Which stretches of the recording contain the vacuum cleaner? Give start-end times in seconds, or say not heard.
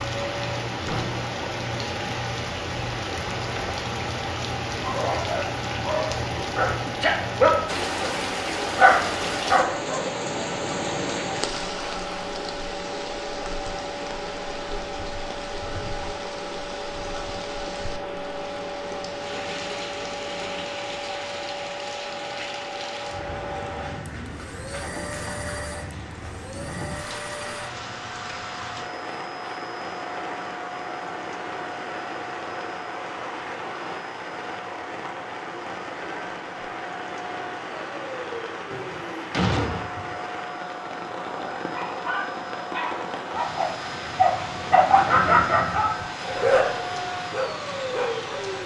0.0-48.6.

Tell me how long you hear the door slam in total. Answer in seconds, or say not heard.
2 s.